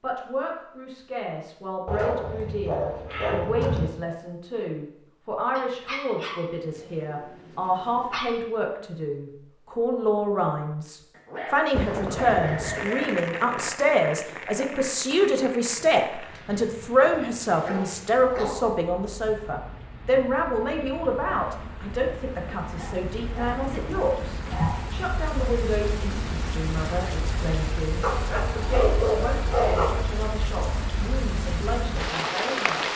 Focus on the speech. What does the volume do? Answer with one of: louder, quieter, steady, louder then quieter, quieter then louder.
louder then quieter.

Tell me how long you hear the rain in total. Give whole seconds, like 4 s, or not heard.
21 s.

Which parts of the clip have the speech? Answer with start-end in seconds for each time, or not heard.
0.0-32.9.